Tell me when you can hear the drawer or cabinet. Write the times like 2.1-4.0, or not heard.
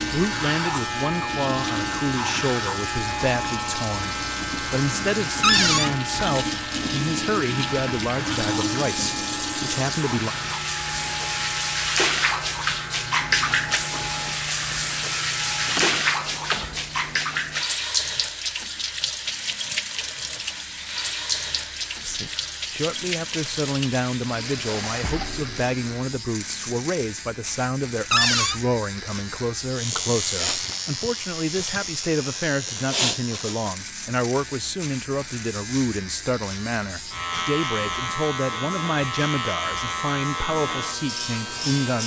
5.4-5.9, 15.7-17.2, 28.1-28.6.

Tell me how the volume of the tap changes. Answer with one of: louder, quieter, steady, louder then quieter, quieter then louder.
louder then quieter.